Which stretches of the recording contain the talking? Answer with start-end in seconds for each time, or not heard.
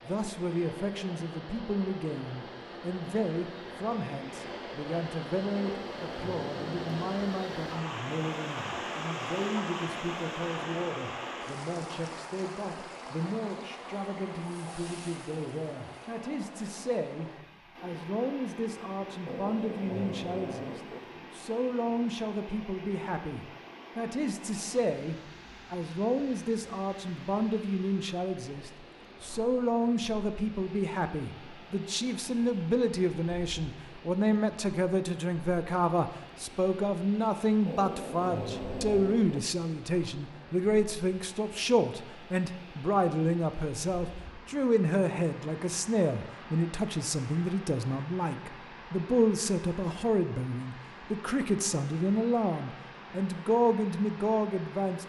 0.1-55.0.